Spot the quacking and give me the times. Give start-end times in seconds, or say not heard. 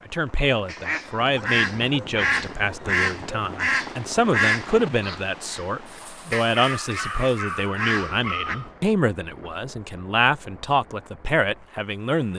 0.7-8.6.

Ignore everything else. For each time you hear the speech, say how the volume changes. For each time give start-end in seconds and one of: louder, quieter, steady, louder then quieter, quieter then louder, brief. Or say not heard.
0.1-12.3 steady.